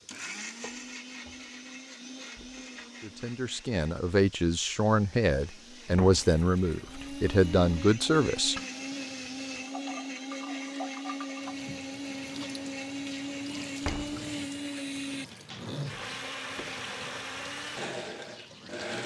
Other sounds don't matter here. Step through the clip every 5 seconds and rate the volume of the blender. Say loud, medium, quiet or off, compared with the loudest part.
medium, loud, loud, loud.